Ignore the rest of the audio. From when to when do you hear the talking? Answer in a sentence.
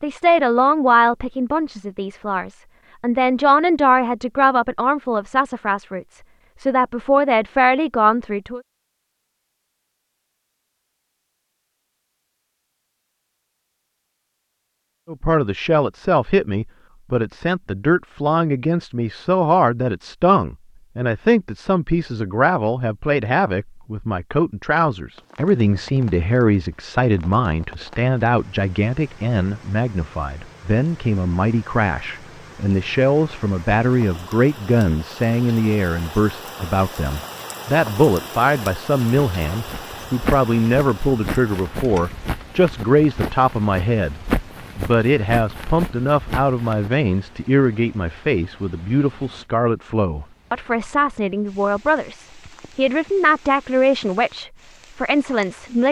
You can hear the talking from 0.0 to 8.6 s and from 15.1 to 55.8 s.